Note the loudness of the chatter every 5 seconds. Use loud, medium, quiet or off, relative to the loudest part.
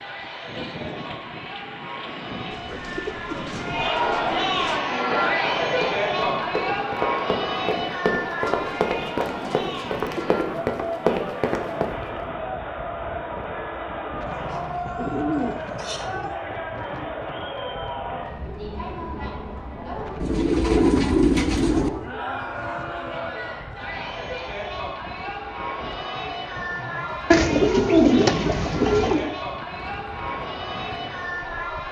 loud, loud, medium, medium, medium, medium, medium.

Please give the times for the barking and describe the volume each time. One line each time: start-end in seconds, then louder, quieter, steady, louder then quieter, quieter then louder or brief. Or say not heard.
not heard.